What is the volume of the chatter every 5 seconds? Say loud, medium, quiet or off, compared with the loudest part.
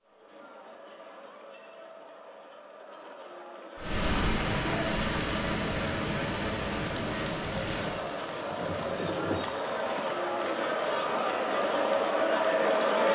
quiet, medium, loud.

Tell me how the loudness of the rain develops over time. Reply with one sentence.
The volume of the rain goes down.